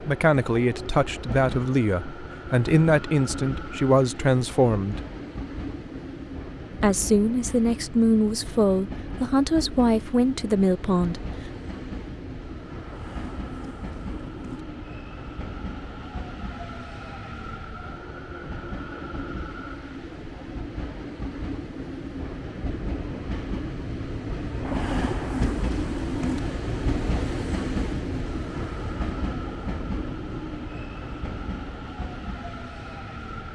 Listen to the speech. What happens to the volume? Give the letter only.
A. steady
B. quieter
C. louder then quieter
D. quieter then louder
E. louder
A.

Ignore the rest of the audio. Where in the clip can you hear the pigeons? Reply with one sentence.
You can hear the pigeons from 12.8 to 14.7 s and from 24.6 to 26.4 s.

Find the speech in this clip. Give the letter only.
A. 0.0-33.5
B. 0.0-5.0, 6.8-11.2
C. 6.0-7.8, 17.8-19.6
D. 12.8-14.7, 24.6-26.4
B.